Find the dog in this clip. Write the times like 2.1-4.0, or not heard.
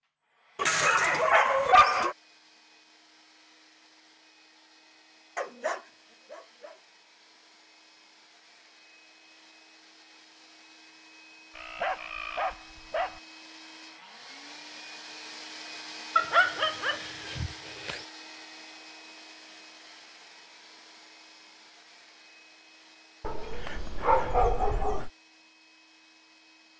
0.6-2.1, 5.3-6.8, 11.6-13.2, 16.1-18.1, 23.2-25.1.